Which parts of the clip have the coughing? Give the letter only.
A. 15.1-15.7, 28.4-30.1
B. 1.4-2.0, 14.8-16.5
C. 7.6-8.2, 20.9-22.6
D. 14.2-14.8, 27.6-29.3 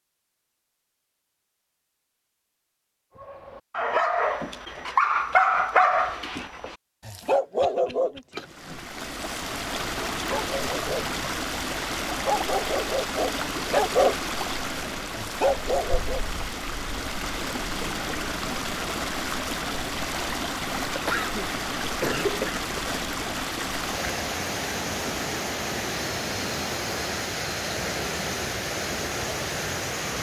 C.